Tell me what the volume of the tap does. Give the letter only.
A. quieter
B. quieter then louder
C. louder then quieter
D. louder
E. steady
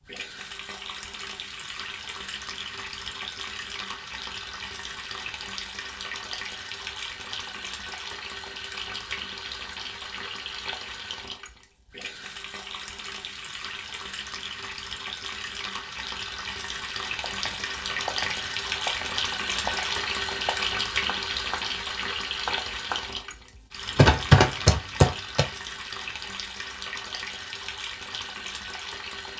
C.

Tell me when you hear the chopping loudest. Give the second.
24 s.